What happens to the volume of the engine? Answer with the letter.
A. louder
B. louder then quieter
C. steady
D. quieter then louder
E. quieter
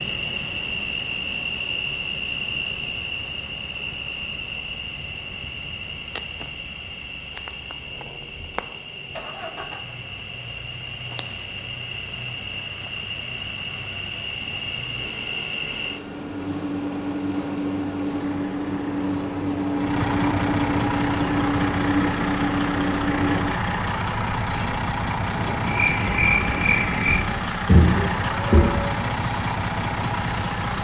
A.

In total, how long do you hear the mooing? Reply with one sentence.
You can hear the mooing for 2 seconds altogether.